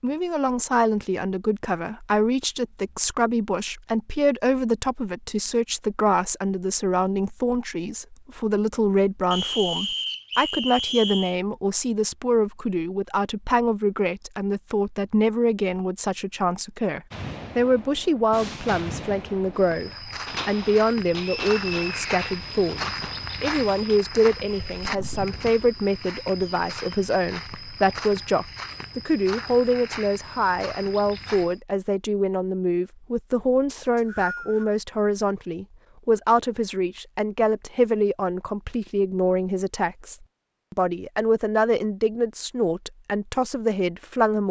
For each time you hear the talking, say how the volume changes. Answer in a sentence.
You can hear the talking from 0.0 to 44.4 s, at a steady volume.